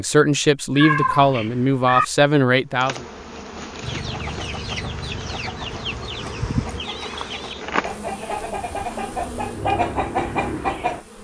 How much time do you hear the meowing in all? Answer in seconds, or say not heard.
2 s.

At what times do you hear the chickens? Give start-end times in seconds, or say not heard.
3.8-11.0.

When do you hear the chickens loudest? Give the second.
10 s.